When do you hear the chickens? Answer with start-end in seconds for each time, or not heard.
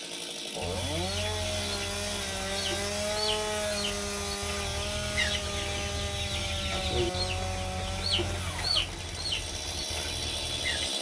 0.6-10.9.